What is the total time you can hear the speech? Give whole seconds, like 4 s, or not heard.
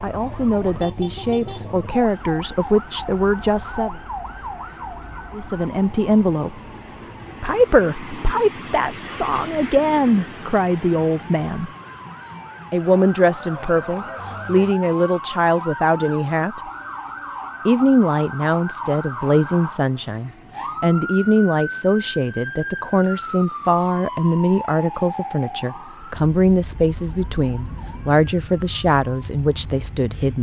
26 s.